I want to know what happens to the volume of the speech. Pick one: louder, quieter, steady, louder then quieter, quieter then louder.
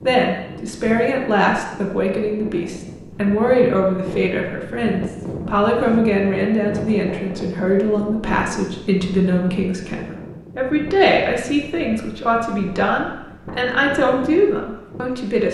steady.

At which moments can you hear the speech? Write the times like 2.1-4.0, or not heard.
0.0-15.4.